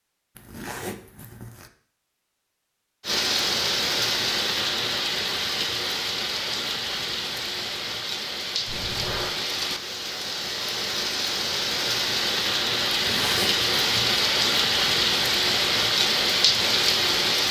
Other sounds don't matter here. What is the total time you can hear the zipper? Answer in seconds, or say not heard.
3 s.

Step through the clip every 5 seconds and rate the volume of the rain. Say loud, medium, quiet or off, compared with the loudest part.
loud, medium, loud, loud.